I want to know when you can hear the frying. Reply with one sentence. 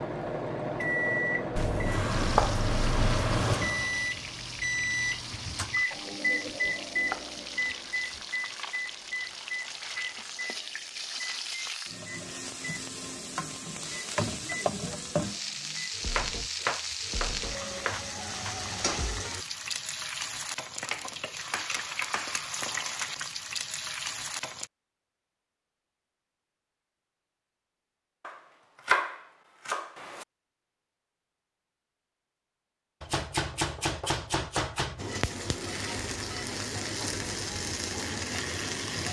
You can hear the frying from 2.1 to 24.7 s and from 35.0 to 39.0 s.